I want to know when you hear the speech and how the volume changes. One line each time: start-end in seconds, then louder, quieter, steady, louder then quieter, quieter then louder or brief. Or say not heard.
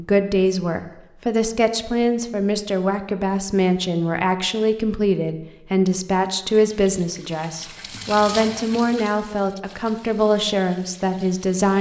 0.0-11.7 steady.